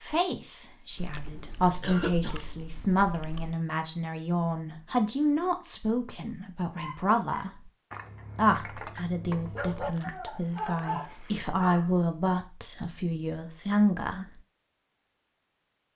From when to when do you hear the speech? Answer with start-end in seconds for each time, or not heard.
0.0-7.7, 8.3-14.4.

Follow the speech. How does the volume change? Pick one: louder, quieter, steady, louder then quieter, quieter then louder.
steady.